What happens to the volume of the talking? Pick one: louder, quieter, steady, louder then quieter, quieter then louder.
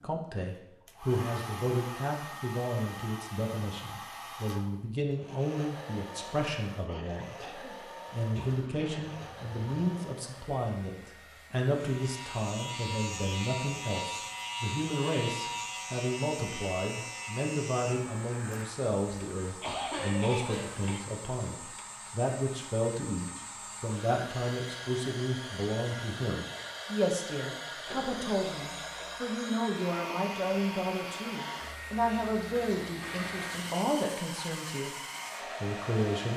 steady.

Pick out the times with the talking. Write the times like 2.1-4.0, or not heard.
0.0-36.3.